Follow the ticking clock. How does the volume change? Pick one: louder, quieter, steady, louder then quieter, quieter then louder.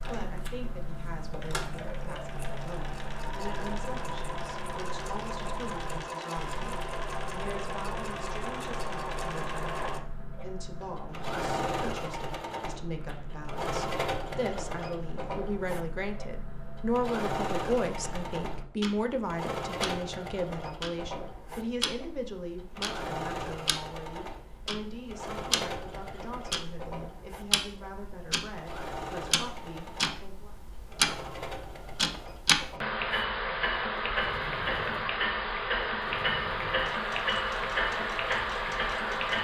louder.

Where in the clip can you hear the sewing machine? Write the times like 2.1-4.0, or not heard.
0.0-39.3.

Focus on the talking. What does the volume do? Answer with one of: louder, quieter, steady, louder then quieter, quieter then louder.
louder then quieter.